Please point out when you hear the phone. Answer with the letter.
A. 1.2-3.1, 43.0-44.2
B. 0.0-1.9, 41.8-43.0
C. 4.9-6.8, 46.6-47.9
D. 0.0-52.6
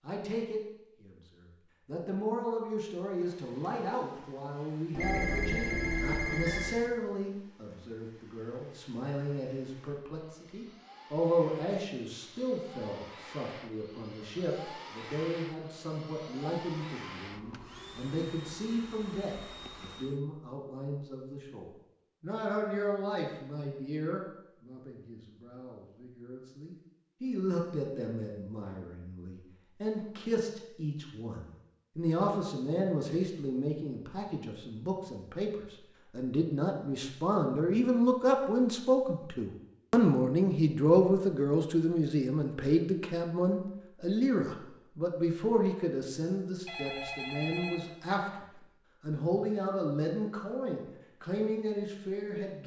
C.